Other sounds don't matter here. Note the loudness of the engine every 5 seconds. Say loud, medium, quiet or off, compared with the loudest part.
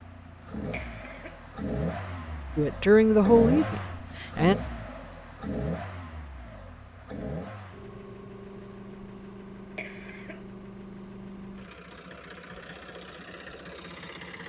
loud, medium, medium.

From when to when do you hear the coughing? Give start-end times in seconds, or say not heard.
0.7-1.4, 9.8-10.4.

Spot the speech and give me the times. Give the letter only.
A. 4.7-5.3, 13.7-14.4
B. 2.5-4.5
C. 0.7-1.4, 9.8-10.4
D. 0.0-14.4
B.